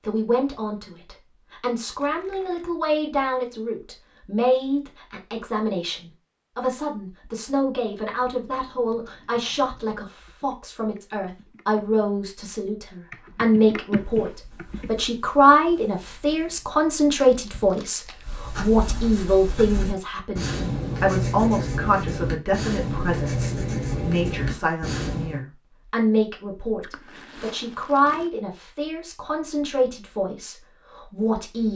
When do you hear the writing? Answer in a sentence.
You can hear the writing from 14.2 to 25.4 s.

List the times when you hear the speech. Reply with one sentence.
You can hear the speech from 0.0 to 31.7 s.